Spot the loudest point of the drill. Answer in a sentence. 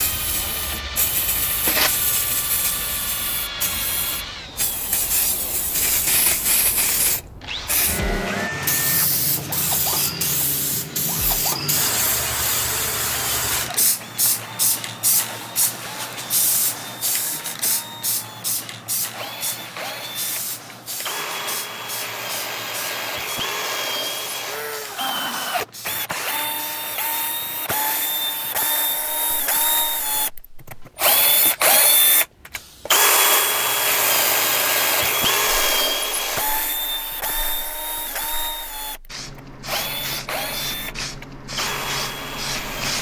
The volume of the drill peaks at 33 seconds.